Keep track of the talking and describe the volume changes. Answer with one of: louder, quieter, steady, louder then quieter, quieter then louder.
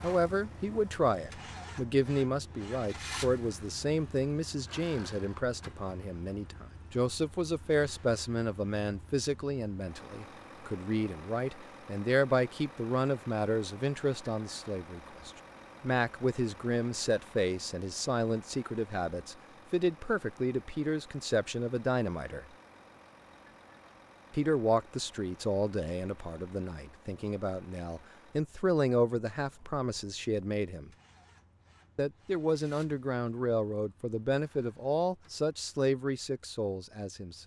steady.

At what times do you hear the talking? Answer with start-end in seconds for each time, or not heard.
0.0-22.4, 24.3-30.9, 31.9-37.4.